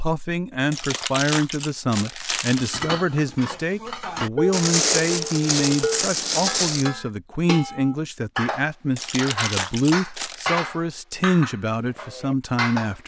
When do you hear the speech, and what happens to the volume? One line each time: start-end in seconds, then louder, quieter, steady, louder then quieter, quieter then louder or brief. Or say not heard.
0.0-13.0 steady.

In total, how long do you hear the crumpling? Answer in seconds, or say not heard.
6 s.